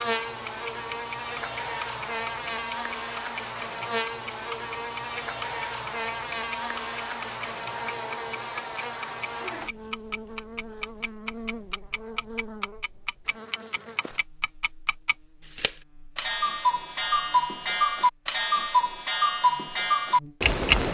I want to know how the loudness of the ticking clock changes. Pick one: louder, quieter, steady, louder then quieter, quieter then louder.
louder.